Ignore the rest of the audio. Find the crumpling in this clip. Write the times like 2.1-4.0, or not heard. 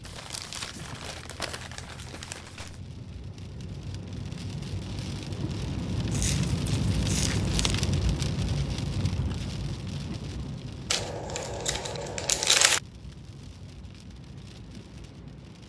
0.0-2.8, 6.1-7.8, 10.9-12.8.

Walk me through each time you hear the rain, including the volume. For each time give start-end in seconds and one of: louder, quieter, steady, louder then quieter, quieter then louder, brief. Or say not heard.
0.0-15.6 louder then quieter.